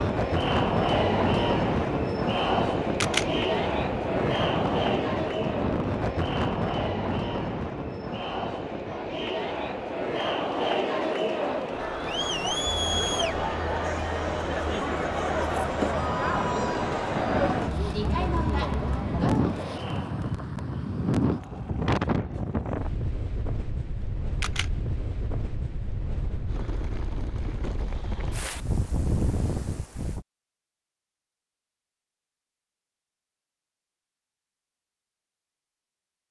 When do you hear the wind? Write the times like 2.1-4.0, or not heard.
0.0-30.2.